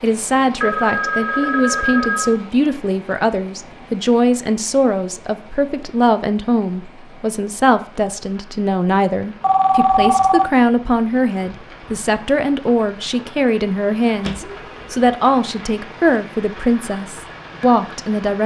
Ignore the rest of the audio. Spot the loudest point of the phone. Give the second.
10 s.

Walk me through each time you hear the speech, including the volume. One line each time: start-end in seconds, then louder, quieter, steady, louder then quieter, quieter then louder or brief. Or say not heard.
0.0-18.4 steady.